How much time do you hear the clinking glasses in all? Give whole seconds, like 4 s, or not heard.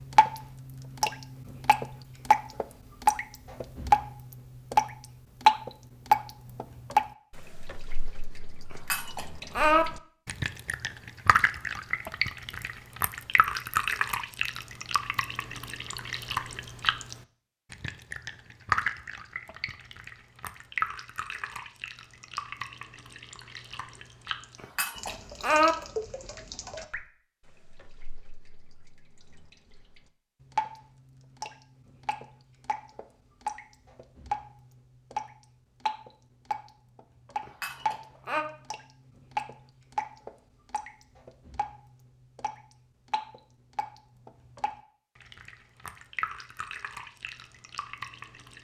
3 s.